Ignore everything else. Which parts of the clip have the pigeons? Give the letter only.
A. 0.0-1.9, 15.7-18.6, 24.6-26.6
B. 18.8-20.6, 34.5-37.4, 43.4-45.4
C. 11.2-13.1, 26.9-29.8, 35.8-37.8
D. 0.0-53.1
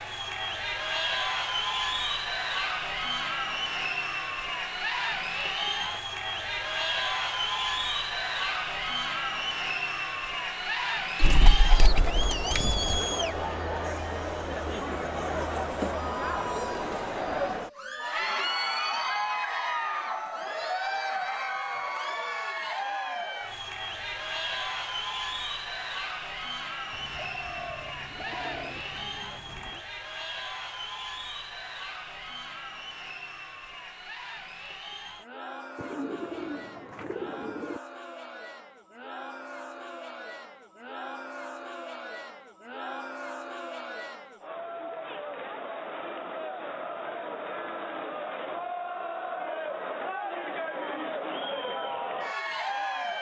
C.